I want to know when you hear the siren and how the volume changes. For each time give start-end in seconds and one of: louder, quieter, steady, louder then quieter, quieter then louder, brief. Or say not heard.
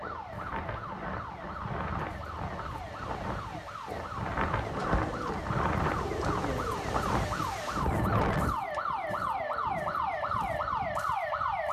0.0-11.6 louder.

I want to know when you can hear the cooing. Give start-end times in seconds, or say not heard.
4.6-10.9.